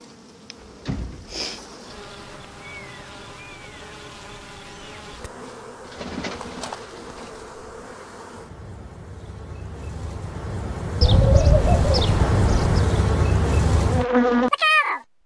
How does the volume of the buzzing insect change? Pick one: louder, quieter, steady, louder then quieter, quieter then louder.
louder.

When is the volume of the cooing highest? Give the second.
11 s.